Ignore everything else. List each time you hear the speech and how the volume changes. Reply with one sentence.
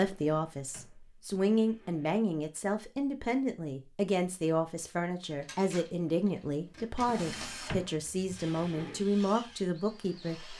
You can hear the speech from 0.0 to 10.5 s, at a steady volume.